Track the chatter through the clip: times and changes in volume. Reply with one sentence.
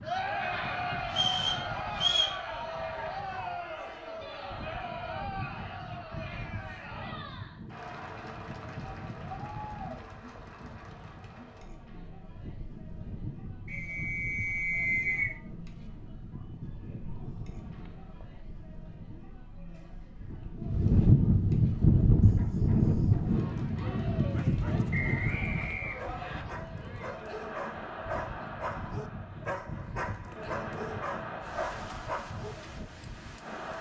The chatter can be heard from 0.0 to 33.7 s, getting quieter then louder.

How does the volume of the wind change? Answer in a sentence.
The volume of the wind goes up, then down.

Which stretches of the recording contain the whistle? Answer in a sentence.
The whistle can be heard from 1.1 to 2.4 s, from 13.7 to 15.3 s and from 24.9 to 26.4 s.